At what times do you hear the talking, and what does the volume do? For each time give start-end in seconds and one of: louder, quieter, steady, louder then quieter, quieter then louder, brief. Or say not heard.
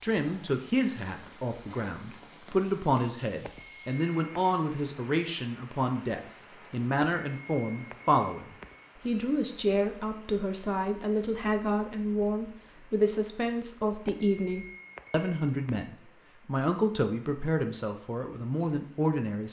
0.0-19.4 steady.